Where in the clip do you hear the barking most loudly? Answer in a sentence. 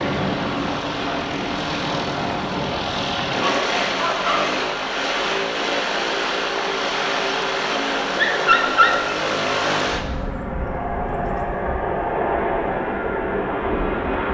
The loudest moment of the barking is at 9 seconds.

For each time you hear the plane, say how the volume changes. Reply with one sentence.
You can hear the plane from 0.0 to 14.2 s, at a steady volume.